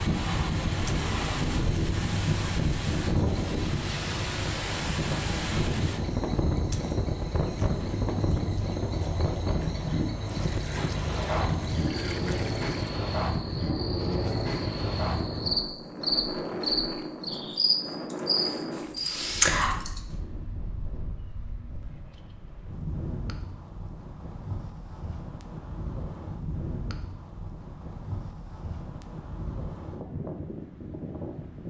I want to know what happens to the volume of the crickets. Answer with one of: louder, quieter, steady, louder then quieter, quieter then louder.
louder.